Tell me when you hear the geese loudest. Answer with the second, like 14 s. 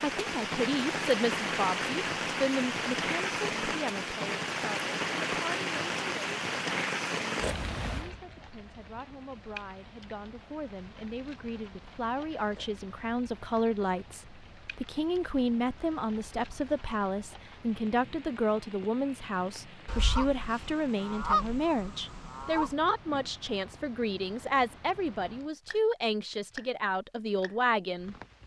21 s.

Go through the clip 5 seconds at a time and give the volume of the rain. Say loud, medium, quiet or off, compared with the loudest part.
loud, loud, quiet, quiet, quiet, quiet.